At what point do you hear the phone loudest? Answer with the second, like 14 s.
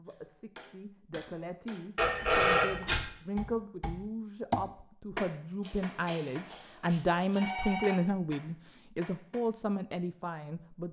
2 s.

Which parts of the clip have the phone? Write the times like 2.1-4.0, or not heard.
1.9-3.0, 5.6-8.0.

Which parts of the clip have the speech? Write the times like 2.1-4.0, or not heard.
0.0-10.8.